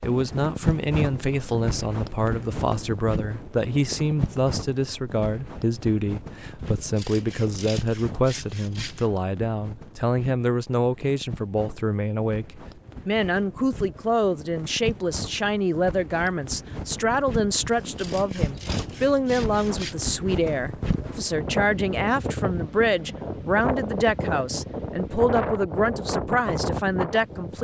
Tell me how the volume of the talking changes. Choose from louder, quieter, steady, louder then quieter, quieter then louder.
steady.